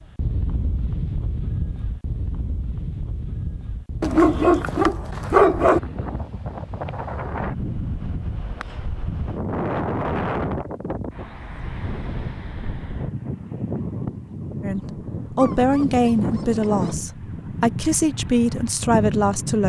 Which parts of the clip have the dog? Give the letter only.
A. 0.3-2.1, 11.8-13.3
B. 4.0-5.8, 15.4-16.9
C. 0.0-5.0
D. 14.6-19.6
B.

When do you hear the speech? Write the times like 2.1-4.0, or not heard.
14.6-19.6.